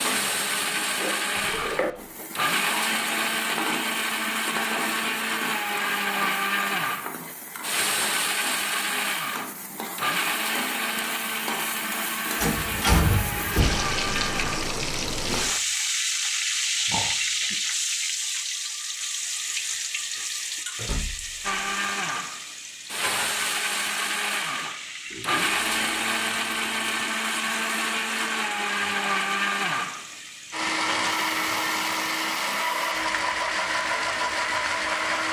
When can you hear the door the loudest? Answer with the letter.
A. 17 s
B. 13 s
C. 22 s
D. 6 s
B.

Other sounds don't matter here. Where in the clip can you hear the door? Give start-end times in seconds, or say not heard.
12.4-13.8, 20.8-21.4.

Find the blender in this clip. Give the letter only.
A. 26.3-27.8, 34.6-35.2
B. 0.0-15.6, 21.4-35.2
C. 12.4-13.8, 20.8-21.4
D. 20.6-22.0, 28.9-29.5
B.